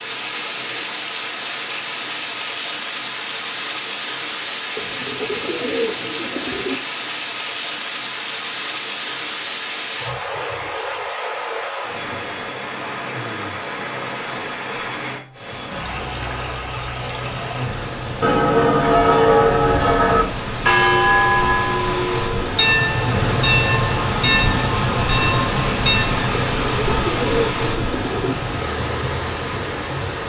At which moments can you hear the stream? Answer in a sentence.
The stream can be heard from 0.0 to 30.2 s.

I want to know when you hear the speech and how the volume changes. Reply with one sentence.
The speech can't be heard in this clip.